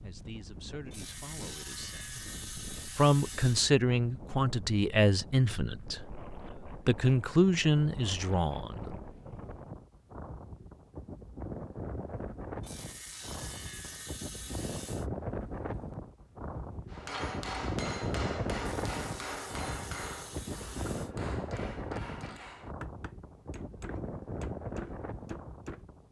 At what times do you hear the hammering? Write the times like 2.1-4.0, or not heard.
16.9-25.9.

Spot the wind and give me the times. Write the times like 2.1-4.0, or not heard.
0.0-26.0.